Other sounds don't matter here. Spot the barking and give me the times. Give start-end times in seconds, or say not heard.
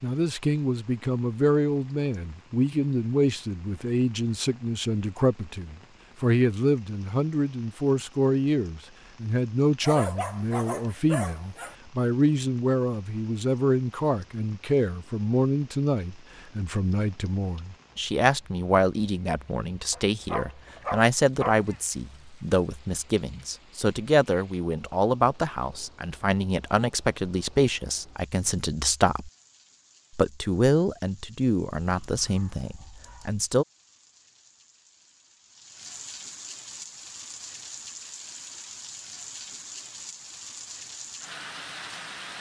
9.8-11.8, 19.9-22.1, 31.8-33.4.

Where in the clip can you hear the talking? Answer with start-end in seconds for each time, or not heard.
0.0-29.3, 30.1-33.6.